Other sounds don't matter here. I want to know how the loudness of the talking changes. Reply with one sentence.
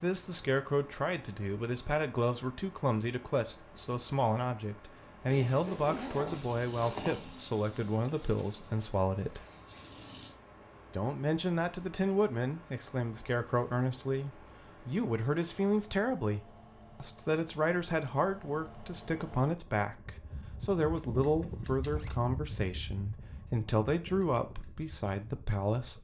The loudness of the talking stays about the same.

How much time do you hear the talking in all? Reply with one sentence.
The talking can be heard for 24 seconds in total.